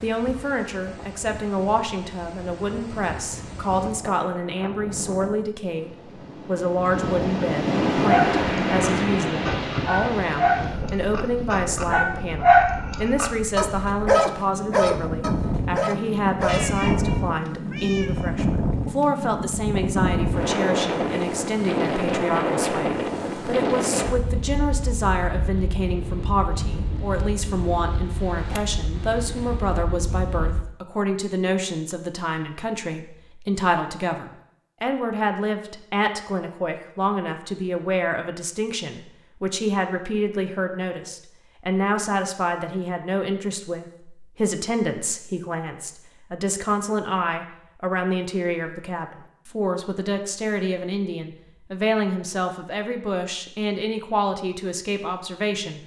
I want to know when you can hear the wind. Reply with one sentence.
The wind can be heard from 0.0 to 30.6 s.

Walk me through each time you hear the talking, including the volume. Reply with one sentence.
The talking can be heard from 0.0 to 55.8 s, at a steady volume.